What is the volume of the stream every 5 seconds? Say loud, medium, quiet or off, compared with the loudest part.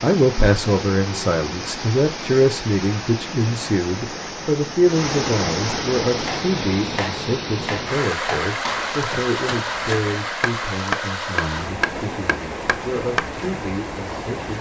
medium, loud, loud.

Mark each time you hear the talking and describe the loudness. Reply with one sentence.
You can hear the talking from 0.0 to 14.5 s, getting quieter.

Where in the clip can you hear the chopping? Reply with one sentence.
You can hear the chopping from 6.0 to 13.2 s.